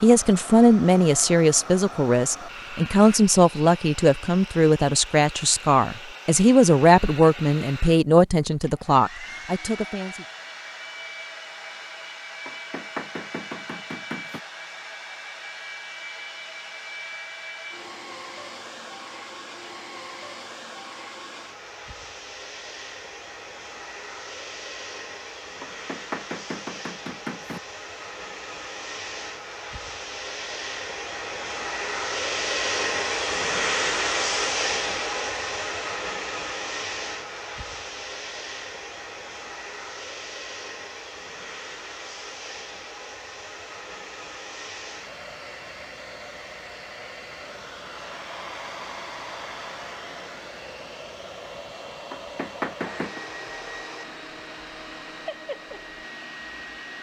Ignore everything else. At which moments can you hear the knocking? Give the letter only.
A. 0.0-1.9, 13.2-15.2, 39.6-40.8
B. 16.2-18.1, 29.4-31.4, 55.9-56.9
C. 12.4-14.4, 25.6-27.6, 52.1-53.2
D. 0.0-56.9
C.